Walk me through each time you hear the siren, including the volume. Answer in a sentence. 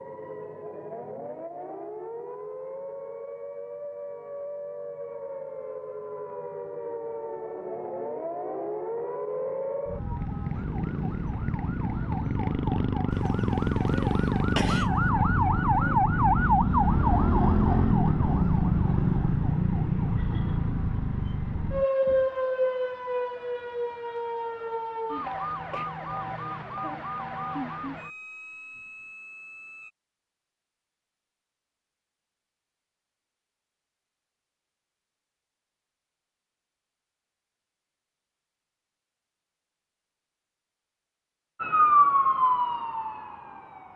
The siren can be heard from 0.0 to 29.9 s, getting louder then quieter; and briefly from 41.6 to 43.9 s.